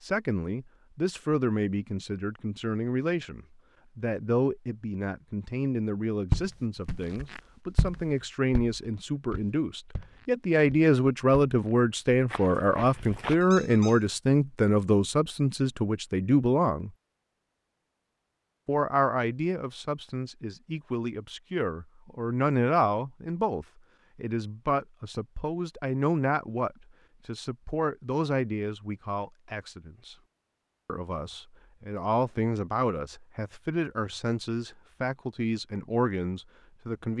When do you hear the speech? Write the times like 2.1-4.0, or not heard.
0.0-16.9, 18.6-30.1, 30.9-37.1.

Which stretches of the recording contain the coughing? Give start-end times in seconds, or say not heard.
not heard.